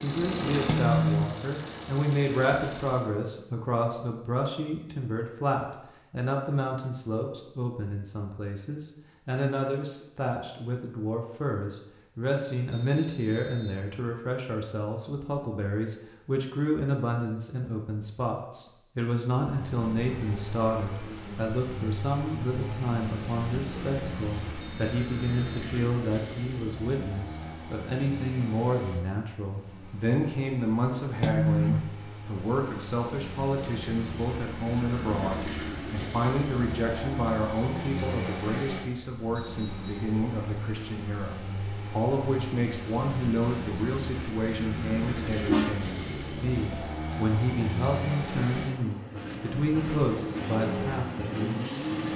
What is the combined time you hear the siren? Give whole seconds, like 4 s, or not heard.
not heard.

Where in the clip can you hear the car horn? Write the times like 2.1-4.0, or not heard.
0.7-1.3, 31.2-31.9, 44.5-45.8.